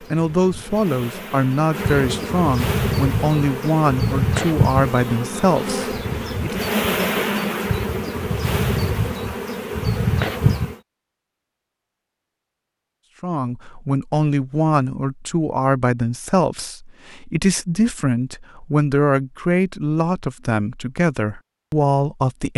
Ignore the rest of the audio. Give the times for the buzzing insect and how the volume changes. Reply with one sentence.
You can hear the buzzing insect from 0.0 to 10.8 s, getting louder.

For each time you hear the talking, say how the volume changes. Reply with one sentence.
The talking can be heard from 0.0 to 6.7 s, at a steady volume; and from 13.2 to 22.5 s, at a steady volume.